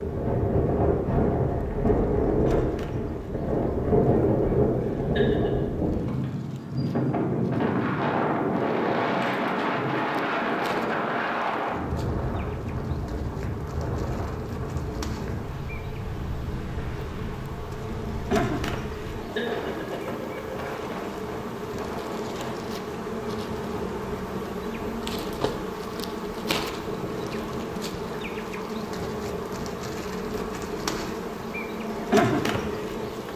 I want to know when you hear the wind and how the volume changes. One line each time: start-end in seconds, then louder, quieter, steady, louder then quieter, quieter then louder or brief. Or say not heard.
0.0-33.3 quieter.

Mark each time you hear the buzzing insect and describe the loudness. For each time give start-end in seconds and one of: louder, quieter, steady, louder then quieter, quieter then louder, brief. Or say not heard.
0.0-33.3 louder.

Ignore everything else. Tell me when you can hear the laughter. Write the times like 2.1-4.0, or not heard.
5.0-5.7, 19.1-20.7.